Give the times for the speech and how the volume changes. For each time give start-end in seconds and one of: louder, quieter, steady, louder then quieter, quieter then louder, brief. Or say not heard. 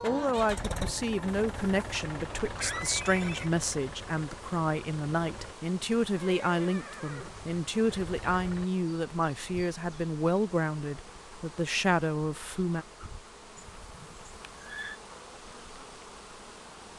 0.0-12.8 steady.